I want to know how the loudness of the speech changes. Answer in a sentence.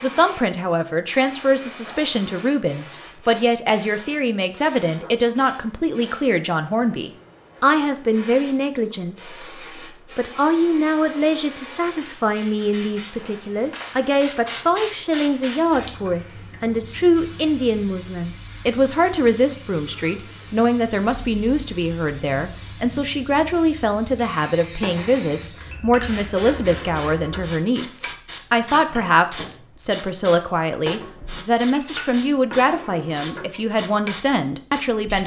The volume of the speech stays about the same.